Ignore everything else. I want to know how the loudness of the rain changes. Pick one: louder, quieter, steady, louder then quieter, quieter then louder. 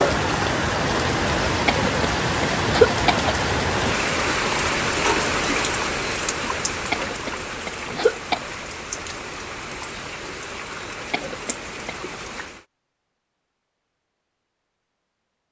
quieter.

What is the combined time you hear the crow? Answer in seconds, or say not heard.
not heard.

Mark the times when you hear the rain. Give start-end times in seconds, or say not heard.
0.0-12.7.